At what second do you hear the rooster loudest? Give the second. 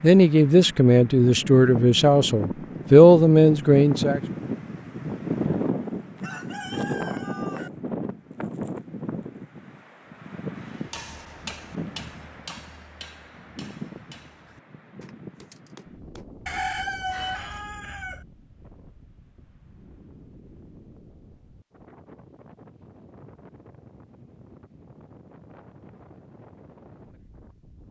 17 s.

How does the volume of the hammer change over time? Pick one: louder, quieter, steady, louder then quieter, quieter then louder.
quieter.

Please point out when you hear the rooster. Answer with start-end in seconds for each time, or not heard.
6.2-7.7, 16.4-18.2.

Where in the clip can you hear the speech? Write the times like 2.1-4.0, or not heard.
0.0-4.2.